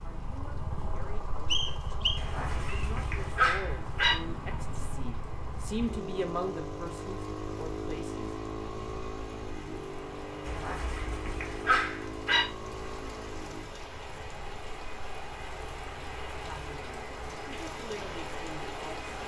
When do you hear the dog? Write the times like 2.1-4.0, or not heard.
2.1-4.2, 10.4-12.4.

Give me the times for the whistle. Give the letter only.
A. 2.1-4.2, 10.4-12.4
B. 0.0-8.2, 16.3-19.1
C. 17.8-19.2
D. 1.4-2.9
D.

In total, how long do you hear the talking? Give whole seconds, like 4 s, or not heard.
11 s.